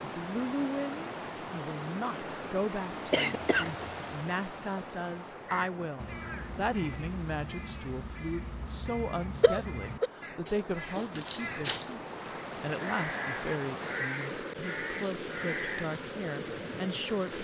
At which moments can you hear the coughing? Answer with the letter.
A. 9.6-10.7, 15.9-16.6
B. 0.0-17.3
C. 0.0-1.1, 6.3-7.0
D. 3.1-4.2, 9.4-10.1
D.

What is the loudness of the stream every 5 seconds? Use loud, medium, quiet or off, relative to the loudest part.
loud, medium, loud, loud.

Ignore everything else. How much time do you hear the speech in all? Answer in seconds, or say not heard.
17 s.